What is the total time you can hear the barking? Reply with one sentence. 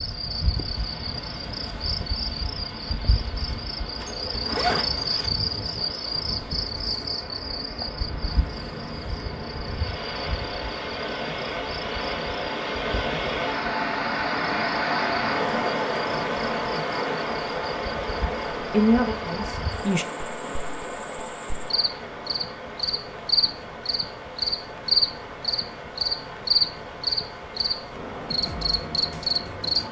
The barking can't be heard in this clip.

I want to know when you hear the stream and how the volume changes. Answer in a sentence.
You can hear the stream from 0.0 to 29.8 s, getting louder then quieter.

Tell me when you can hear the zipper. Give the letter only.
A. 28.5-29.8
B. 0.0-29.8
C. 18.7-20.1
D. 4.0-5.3
D.